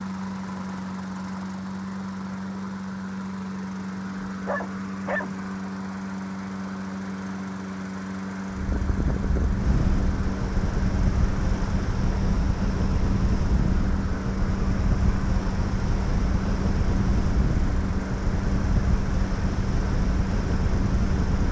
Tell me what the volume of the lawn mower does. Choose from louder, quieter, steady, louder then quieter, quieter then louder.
steady.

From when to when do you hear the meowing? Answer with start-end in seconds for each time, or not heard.
not heard.